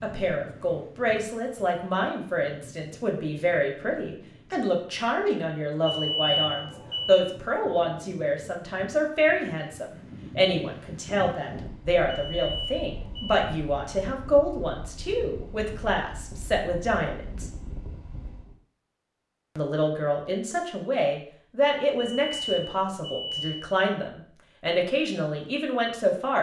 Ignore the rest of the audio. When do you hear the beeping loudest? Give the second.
6 s.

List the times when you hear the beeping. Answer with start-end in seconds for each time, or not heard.
5.8-7.2, 12.1-13.4, 21.9-23.6.